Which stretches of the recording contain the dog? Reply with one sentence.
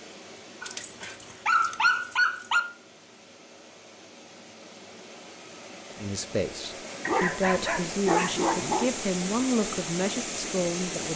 The dog can be heard from 0.6 to 2.6 s and from 7.0 to 8.9 s.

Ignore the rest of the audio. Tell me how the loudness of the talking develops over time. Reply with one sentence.
The loudness of the talking stays about the same.